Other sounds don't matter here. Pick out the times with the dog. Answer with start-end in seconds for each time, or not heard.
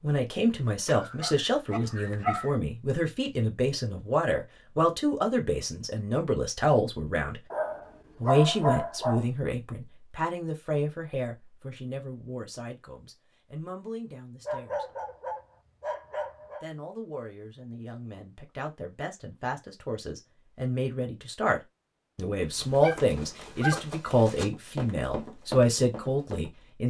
0.8-2.5, 7.5-9.2, 14.4-16.6, 22.1-23.9.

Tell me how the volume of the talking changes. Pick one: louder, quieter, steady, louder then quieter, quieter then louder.
quieter then louder.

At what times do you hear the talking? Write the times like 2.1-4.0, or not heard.
0.0-7.4, 8.2-14.8, 16.6-26.8.